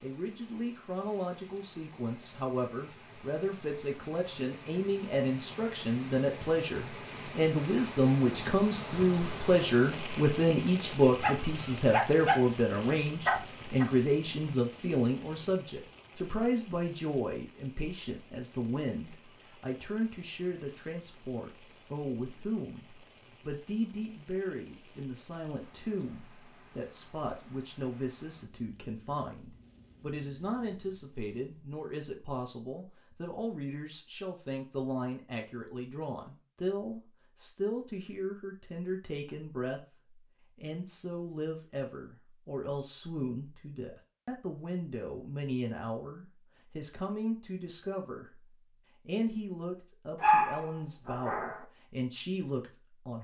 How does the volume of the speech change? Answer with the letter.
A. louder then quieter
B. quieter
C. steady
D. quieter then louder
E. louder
B.